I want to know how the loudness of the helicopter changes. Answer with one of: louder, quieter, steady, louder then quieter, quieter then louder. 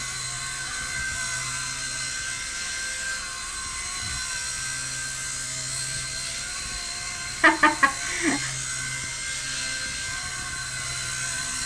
steady.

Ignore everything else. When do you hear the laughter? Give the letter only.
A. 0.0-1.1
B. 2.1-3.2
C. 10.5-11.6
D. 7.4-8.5
D.